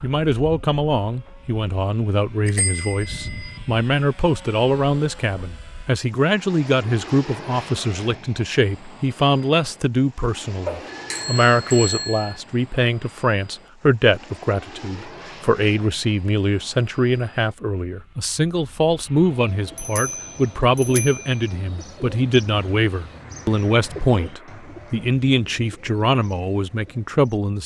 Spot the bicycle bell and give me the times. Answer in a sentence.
You can hear the bicycle bell from 2.5 to 3.6 s, from 10.7 to 12.4 s and from 19.8 to 21.4 s.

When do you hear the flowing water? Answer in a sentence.
You can't hear the flowing water here.